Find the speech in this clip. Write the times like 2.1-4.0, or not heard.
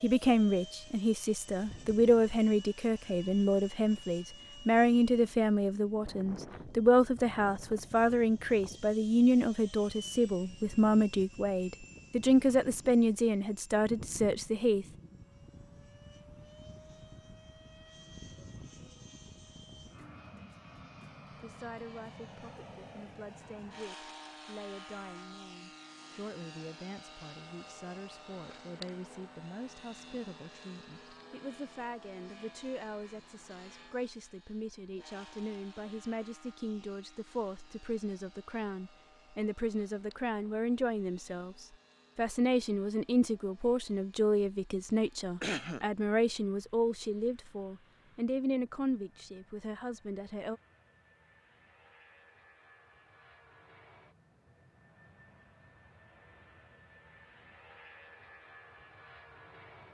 0.0-14.8, 21.3-50.6.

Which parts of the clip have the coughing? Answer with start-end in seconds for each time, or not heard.
45.4-45.9.